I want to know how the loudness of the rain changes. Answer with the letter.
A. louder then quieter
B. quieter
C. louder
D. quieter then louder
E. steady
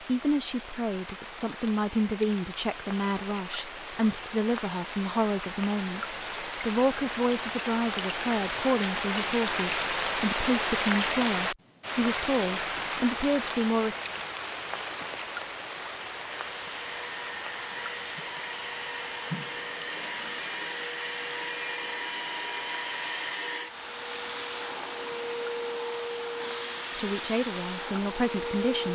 A.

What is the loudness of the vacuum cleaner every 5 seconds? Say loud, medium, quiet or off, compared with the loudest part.
off, off, off, loud, loud, loud.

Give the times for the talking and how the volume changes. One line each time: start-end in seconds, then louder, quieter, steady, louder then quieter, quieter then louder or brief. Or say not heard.
0.0-13.9 steady
26.9-28.8 brief.